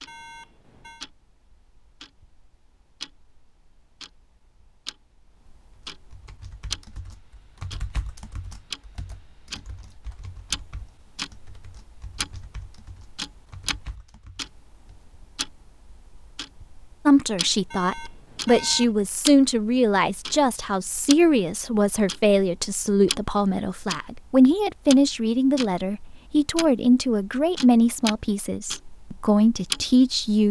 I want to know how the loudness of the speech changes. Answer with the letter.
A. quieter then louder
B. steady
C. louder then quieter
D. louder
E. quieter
B.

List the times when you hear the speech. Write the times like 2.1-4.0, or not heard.
17.1-30.4.